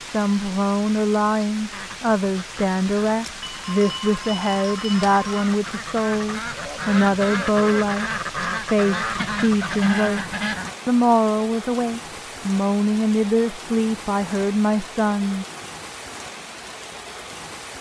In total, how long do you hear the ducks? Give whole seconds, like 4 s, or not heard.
9 s.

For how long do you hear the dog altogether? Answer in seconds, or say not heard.
not heard.